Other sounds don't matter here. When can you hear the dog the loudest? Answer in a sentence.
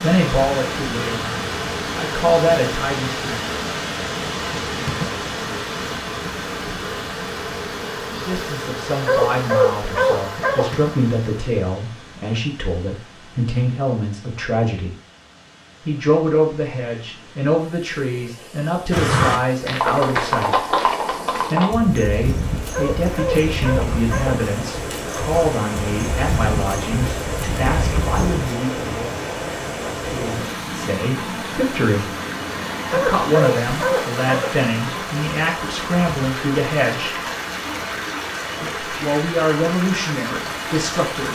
The volume of the dog peaks at 10 seconds.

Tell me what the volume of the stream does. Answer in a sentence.
The volume of the stream goes down, then up.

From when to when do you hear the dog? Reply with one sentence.
You can hear the dog from 9.1 to 10.8 s, from 22.7 to 24.4 s and from 32.9 to 34.5 s.